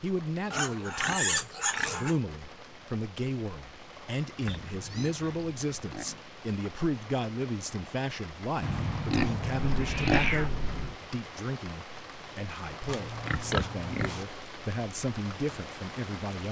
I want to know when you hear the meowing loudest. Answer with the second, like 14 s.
10 s.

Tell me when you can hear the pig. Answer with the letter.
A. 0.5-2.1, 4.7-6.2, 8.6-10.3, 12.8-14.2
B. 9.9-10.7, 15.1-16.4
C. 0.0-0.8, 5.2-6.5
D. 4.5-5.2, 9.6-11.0
A.